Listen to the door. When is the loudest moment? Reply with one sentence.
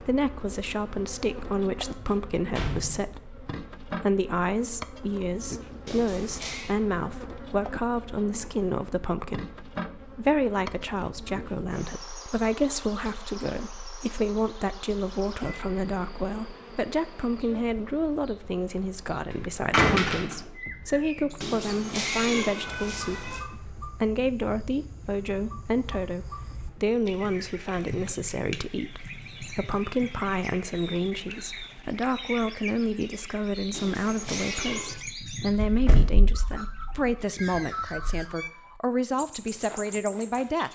The loudest moment of the door is at 20 seconds.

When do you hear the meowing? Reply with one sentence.
You can hear the meowing from 5.8 to 6.8 s, from 21.4 to 23.4 s and from 33.7 to 35.0 s.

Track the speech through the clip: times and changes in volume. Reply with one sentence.
The speech can be heard from 0.0 to 40.6 s, at a steady volume.